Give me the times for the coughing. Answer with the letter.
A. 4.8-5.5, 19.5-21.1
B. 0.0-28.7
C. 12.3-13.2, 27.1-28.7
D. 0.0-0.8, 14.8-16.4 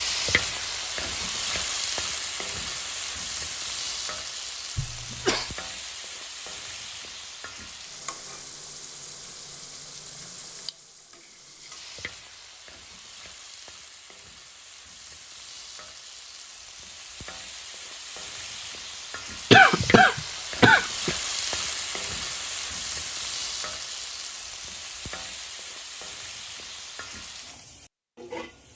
A.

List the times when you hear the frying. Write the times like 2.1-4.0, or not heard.
0.0-28.7.